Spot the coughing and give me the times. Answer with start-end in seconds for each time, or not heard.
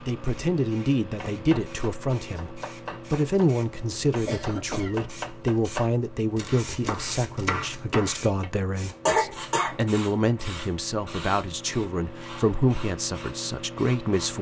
4.2-5.0, 9.1-9.8.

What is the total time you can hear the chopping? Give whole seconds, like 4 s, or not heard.
7 s.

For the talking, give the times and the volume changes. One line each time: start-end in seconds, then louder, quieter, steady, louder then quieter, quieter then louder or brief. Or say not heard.
0.0-14.3 steady.